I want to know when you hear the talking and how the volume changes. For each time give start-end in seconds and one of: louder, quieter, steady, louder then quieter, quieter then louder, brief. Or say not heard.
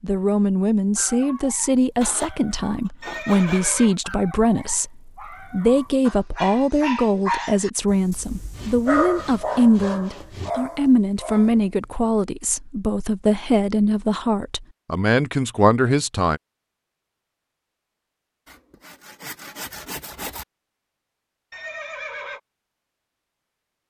0.0-16.4 steady.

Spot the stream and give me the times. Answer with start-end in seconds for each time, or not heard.
not heard.